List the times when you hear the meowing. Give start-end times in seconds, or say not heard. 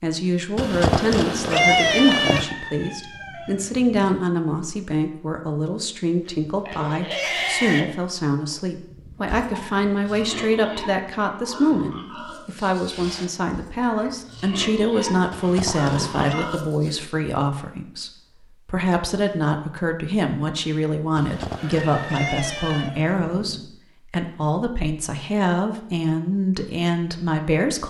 0.6-2.5, 15.3-16.5, 21.1-22.9.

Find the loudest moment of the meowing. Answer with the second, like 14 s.
2 s.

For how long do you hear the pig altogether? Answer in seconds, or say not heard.
11 s.